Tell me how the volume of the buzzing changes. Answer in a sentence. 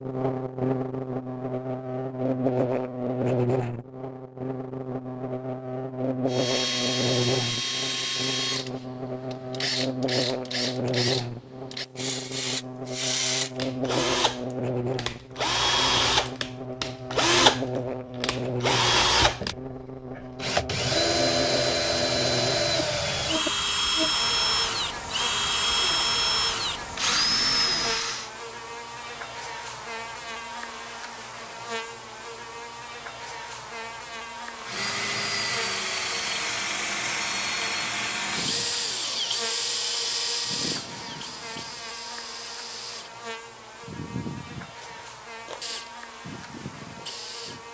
The loudness of the buzzing goes down.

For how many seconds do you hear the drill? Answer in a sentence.
The drill can be heard for 35 seconds in total.